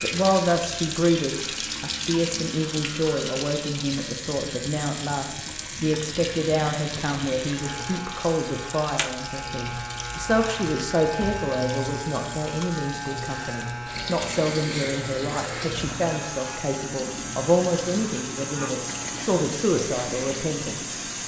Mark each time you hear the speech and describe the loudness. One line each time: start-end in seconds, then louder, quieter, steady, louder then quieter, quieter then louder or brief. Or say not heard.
0.0-21.0 steady.